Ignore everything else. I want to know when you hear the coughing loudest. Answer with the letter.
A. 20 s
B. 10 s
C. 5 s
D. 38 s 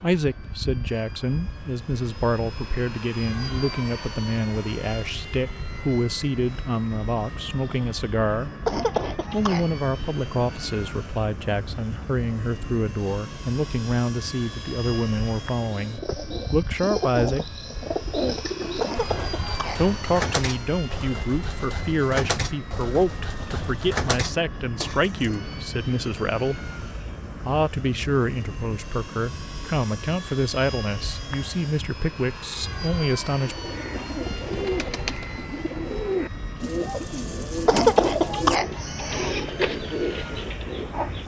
D.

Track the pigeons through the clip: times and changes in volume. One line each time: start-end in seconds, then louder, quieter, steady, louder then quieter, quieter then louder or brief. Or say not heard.
15.6-25.4 steady
33.4-41.2 steady.